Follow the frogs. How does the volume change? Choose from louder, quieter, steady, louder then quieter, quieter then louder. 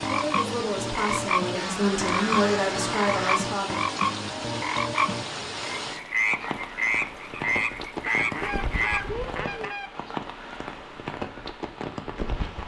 steady.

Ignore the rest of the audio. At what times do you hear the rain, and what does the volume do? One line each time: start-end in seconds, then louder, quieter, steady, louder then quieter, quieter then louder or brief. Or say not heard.
0.0-12.6 steady.